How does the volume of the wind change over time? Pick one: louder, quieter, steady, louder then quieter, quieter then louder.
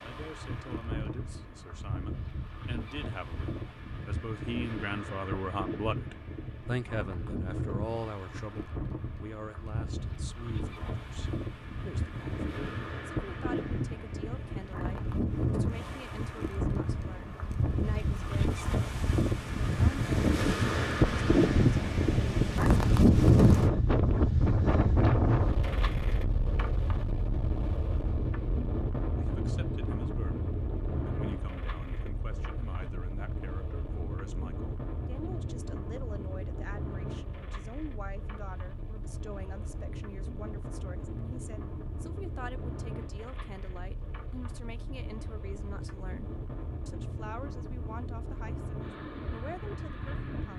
louder then quieter.